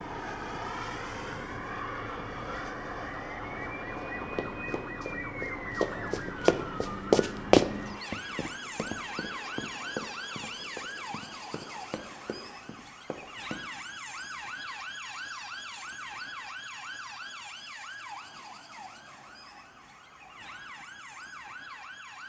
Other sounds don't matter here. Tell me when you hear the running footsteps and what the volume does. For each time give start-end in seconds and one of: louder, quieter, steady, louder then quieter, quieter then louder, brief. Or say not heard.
3.6-13.7 louder then quieter.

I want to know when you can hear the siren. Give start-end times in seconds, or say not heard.
0.0-22.2.